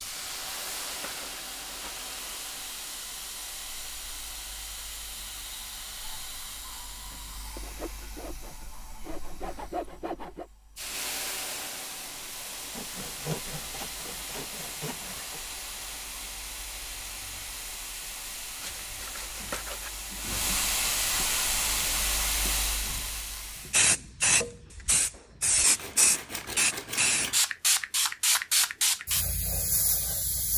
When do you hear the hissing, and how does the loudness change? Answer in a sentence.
You can hear the hissing from 0.0 to 30.5 s, getting louder.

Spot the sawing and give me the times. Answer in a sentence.
You can hear the sawing from 0.1 to 2.0 s, from 7.5 to 10.5 s, from 12.8 to 15.4 s, from 18.6 to 20.4 s and from 25.6 to 27.4 s.